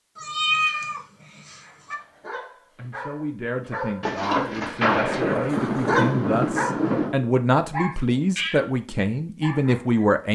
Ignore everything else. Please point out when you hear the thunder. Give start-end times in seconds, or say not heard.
4.0-7.2.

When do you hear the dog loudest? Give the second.
6 s.